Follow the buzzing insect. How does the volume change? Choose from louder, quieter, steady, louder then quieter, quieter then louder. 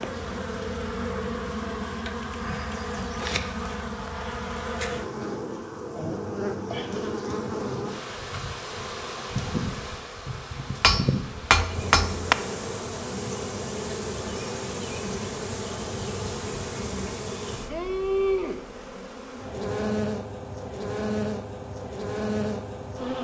steady.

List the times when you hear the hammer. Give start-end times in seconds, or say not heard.
10.8-12.3.